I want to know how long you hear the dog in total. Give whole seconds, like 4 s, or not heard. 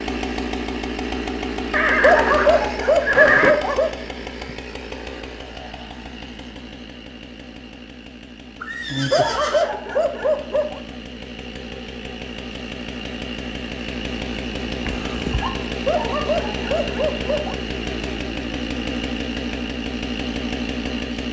5 s.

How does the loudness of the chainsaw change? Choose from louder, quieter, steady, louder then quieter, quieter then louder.
quieter then louder.